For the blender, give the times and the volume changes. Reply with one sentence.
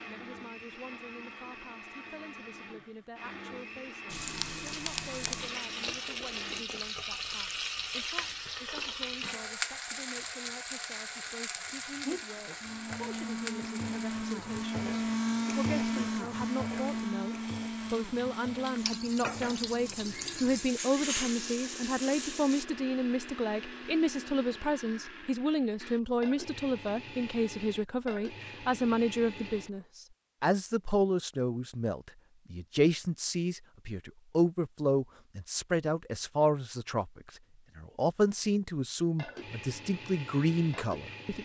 You can hear the blender from 0.0 to 6.7 s, at a steady volume; from 12.3 to 29.9 s, getting quieter; and briefly from 39.1 to 41.4 s.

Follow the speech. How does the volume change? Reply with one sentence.
The loudness of the speech goes up.